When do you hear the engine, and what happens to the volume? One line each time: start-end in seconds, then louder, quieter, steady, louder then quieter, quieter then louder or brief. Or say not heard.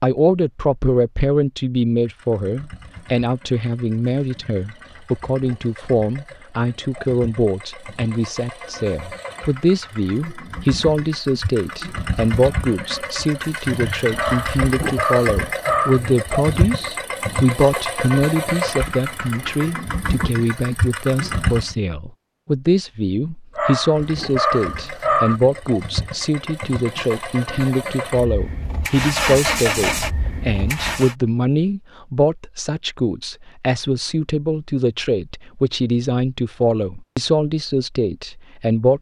2.0-21.8 louder
23.9-31.1 louder.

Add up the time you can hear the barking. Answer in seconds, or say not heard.
4 s.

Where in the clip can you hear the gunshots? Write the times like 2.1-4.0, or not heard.
not heard.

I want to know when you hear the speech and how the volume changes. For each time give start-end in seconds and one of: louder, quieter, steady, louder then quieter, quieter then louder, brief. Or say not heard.
0.0-38.9 steady.